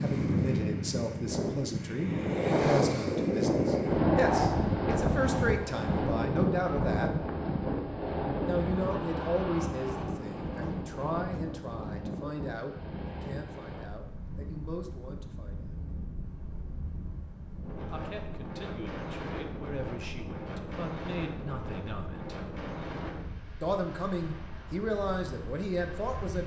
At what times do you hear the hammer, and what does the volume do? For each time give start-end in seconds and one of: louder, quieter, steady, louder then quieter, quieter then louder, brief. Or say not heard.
not heard.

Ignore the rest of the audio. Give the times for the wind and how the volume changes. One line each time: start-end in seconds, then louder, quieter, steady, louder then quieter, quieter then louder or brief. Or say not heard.
0.0-26.4 quieter.